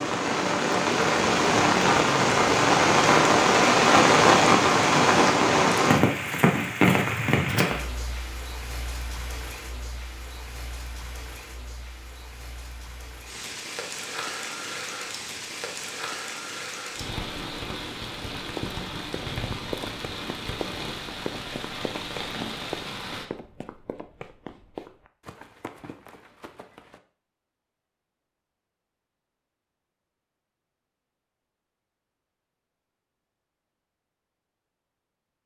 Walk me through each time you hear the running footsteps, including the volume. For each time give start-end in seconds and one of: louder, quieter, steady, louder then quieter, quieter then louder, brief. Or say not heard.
18.5-27.0 quieter.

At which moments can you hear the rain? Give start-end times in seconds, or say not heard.
0.0-23.2.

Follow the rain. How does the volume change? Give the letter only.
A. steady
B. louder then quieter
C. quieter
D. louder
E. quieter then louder
E.